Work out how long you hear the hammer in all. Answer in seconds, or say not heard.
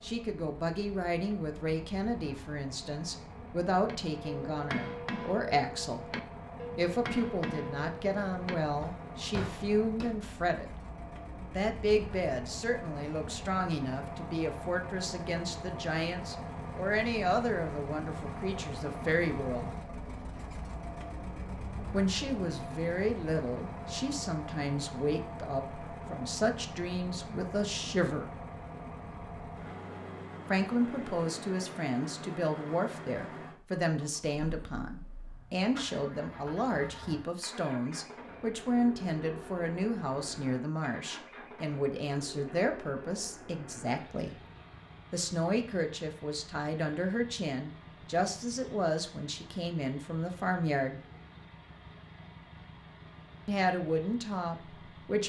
6 s.